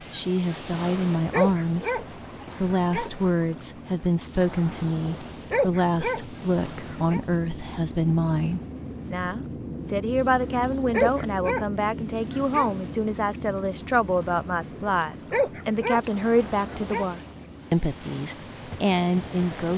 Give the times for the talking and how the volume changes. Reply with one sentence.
The talking can be heard from 0.1 to 19.7 s, at a steady volume.